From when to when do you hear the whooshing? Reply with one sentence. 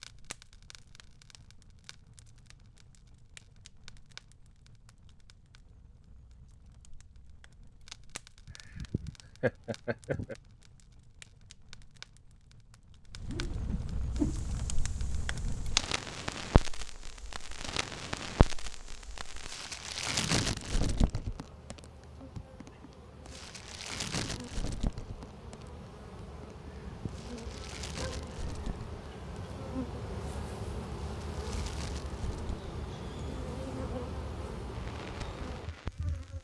The whooshing can be heard from 13.2 to 14.4 s.